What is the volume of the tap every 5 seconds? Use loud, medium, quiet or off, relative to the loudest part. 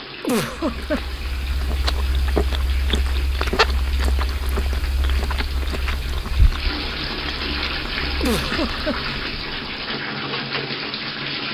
medium, loud, loud.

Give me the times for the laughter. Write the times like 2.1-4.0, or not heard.
0.2-1.2, 8.2-9.2.